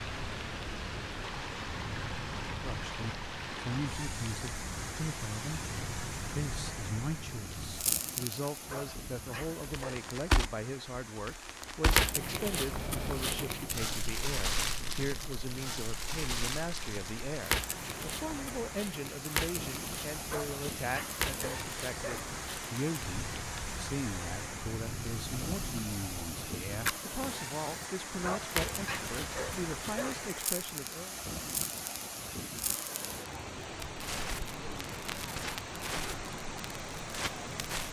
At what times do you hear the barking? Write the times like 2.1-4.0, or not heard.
8.7-10.2, 20.2-22.3, 28.2-30.2.